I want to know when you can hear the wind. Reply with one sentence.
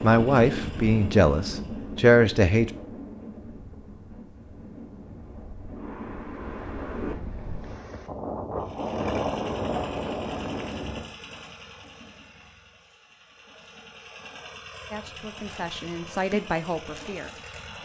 The wind can be heard from 0.0 to 11.2 s.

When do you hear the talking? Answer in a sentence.
The talking can be heard from 0.0 to 2.7 s and from 14.9 to 17.8 s.